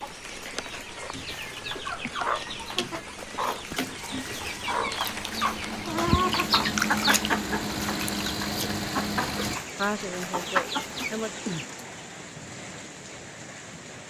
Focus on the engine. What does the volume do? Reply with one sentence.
The volume of the engine goes up.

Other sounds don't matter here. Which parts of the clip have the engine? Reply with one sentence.
You can hear the engine from 2.5 to 9.6 s.